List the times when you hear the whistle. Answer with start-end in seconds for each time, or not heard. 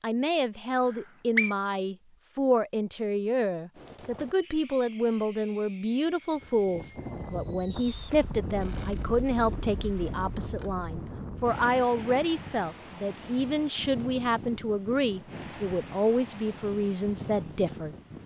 0.9-1.6.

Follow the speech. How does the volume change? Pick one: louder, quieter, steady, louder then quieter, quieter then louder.
steady.